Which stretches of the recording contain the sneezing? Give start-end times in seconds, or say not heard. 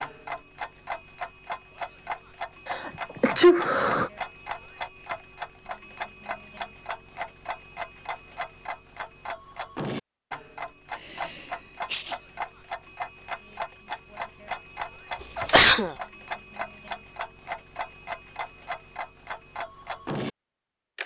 2.7-4.1, 11.1-12.2, 15.3-15.9.